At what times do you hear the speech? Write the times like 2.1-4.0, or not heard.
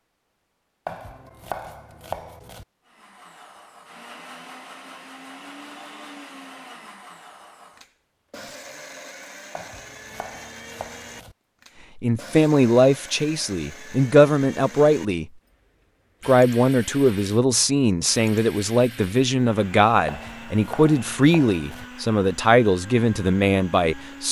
11.9-15.2, 16.2-24.2.